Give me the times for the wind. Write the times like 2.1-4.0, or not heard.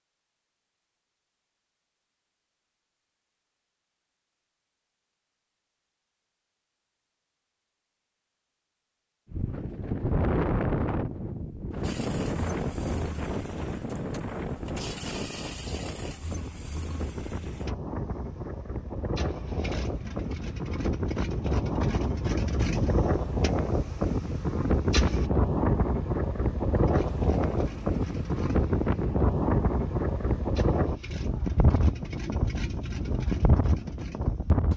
9.3-34.7.